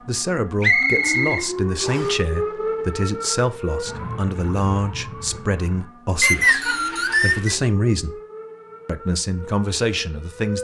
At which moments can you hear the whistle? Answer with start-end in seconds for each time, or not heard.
0.6-2.1, 6.2-7.5.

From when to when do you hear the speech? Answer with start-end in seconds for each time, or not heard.
0.1-8.2, 8.8-10.5.